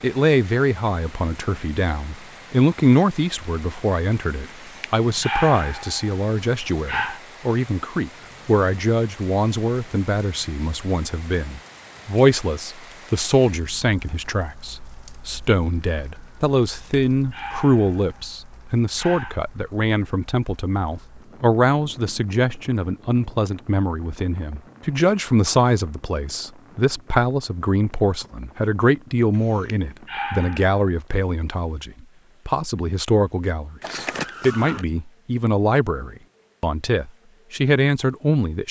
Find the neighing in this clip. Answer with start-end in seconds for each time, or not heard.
33.8-34.9.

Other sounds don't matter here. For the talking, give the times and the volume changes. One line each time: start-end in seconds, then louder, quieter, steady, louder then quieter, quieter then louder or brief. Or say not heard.
0.0-38.6 steady.